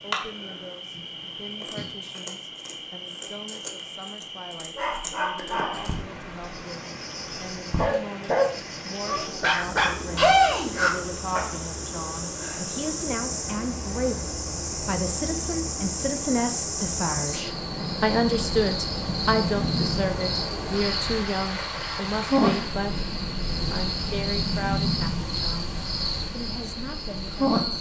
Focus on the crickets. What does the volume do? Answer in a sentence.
The volume of the crickets goes up.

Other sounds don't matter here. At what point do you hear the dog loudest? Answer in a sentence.
The volume of the dog peaks at 10 seconds.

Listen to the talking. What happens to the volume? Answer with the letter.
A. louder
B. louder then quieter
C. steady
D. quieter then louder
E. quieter
B.